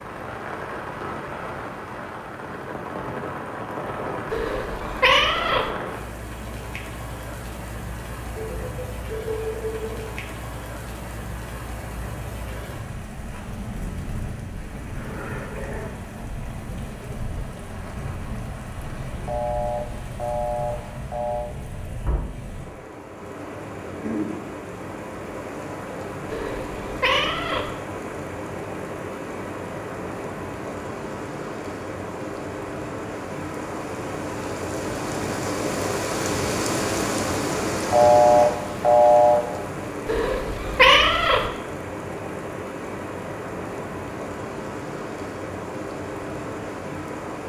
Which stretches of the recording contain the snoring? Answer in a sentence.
The snoring can't be heard in this clip.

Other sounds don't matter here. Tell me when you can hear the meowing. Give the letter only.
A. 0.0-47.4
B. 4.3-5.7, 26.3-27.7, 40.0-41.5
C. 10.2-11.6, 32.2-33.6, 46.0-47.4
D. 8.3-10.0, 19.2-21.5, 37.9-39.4
B.